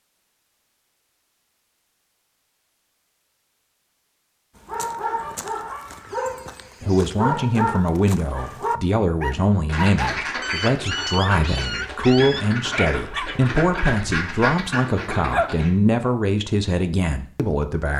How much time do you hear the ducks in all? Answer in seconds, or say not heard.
6 s.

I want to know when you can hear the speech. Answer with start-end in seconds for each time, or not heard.
6.8-17.9.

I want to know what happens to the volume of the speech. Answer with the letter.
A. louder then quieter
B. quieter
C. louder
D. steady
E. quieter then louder
D.